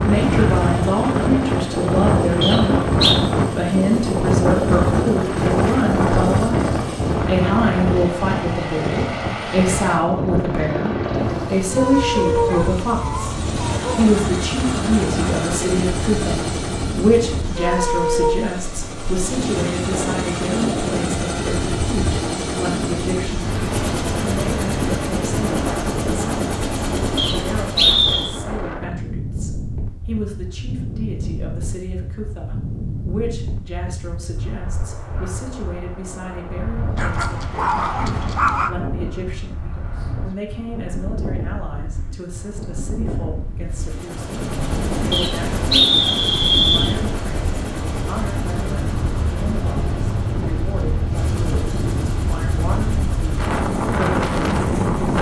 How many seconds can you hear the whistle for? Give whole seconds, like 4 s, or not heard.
4 s.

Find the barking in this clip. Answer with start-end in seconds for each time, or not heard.
12.3-14.2, 37.0-38.7.